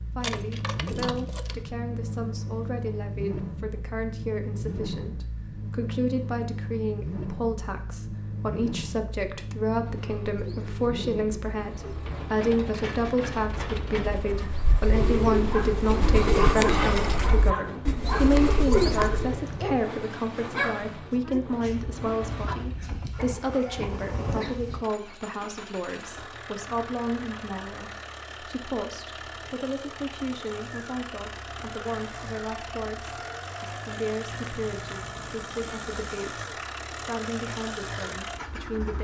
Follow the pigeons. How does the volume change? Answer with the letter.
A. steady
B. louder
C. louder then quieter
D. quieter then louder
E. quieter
B.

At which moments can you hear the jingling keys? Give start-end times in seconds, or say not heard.
0.2-1.6, 18.8-19.9, 34.2-36.1.